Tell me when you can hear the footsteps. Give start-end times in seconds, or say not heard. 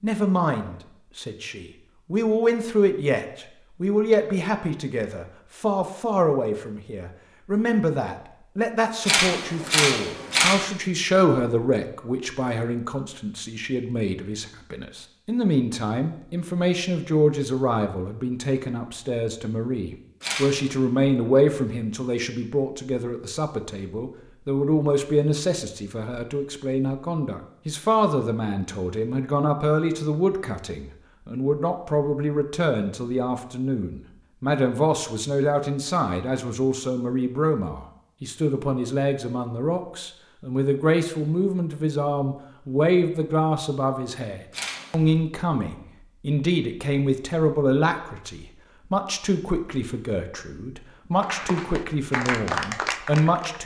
not heard.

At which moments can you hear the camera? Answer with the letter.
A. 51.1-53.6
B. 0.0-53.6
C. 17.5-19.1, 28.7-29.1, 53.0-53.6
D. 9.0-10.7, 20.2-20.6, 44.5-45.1
D.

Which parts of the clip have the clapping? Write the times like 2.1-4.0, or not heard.
51.1-53.6.